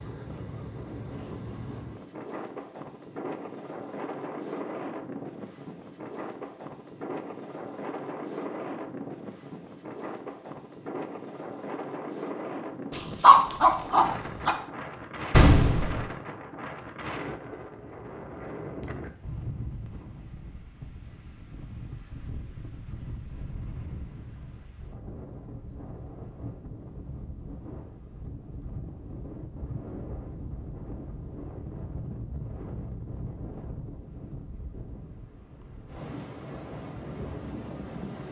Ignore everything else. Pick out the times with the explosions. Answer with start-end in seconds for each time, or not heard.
15.3-16.1.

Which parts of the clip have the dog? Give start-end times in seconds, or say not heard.
12.9-14.6.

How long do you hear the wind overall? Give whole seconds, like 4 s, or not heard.
38 s.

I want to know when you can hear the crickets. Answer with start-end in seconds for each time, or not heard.
not heard.